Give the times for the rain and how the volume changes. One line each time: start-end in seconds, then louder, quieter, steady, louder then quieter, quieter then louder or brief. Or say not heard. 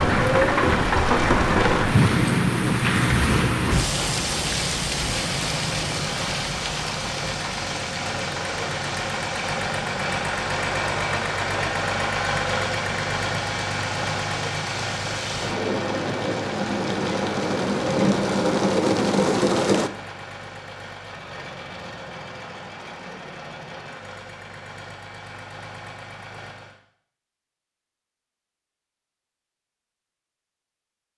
0.0-19.9 quieter then louder.